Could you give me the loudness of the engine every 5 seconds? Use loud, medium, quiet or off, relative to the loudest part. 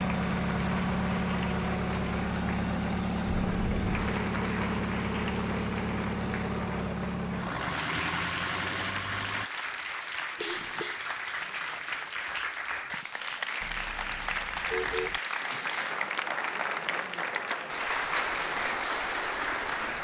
loud, loud, off, off.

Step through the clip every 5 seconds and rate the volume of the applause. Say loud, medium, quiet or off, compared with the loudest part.
medium, medium, loud, loud.